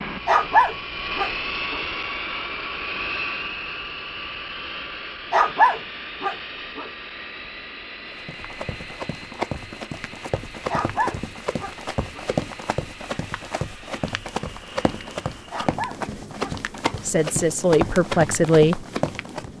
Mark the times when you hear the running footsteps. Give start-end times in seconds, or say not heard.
8.1-19.5.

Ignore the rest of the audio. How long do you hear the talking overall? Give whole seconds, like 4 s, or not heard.
2 s.